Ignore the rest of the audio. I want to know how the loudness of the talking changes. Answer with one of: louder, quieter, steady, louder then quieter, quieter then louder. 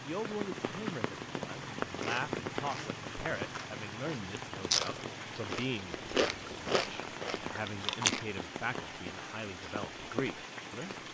steady.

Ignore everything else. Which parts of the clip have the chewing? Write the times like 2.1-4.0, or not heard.
1.8-8.2.